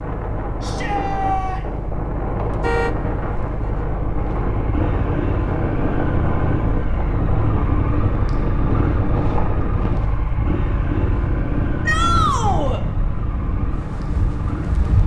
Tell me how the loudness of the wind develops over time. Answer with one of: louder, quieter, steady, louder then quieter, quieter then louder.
steady.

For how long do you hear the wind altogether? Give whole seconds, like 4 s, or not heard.
15 s.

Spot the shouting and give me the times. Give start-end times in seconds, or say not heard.
0.6-1.6, 11.8-12.8.